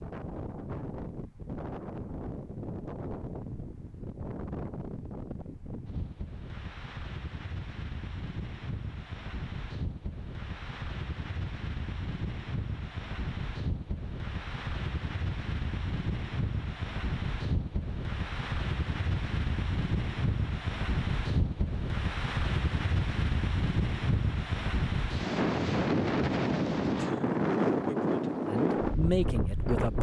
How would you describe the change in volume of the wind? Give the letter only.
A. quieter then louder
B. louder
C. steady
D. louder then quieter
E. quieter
B.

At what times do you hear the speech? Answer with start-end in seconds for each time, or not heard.
28.4-29.9.